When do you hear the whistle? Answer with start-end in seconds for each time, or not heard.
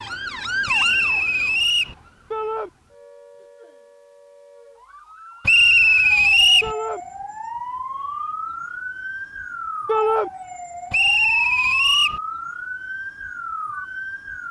0.7-1.9, 5.5-6.7, 10.9-12.2.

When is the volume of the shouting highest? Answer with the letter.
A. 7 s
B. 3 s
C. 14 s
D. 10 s
D.